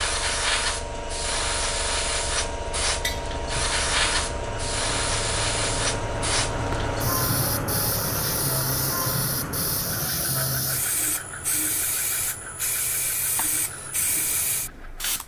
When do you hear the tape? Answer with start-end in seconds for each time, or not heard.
not heard.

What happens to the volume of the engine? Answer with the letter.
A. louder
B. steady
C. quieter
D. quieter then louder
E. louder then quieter
E.